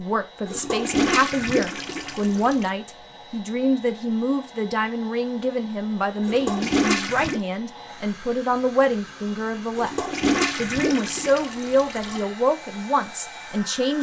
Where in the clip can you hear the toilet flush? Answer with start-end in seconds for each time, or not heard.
0.5-2.7, 6.2-7.4, 9.8-12.2.